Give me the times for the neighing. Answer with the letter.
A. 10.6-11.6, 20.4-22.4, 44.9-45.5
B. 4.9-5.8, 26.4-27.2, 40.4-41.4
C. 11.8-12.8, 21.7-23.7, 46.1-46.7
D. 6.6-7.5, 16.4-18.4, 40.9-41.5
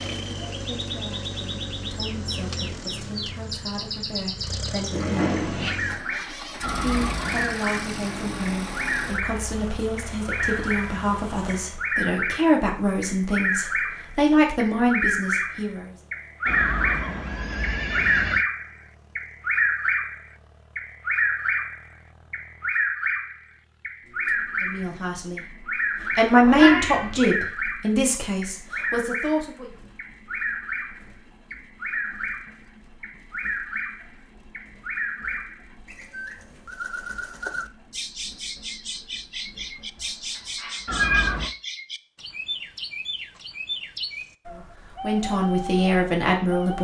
D.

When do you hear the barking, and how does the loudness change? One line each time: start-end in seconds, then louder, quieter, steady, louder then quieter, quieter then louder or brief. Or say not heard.
not heard.